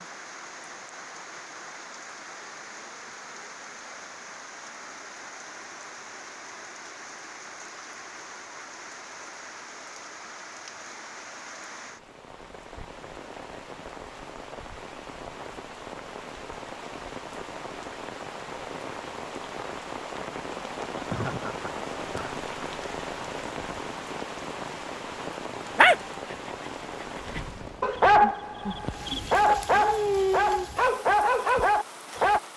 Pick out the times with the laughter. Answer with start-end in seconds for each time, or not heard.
21.1-22.4.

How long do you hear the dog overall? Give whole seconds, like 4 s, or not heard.
7 s.